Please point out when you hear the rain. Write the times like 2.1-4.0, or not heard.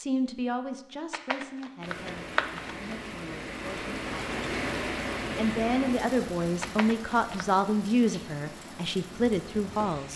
1.8-10.1.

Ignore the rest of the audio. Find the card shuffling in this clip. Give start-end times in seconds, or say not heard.
1.1-2.8, 6.6-7.5.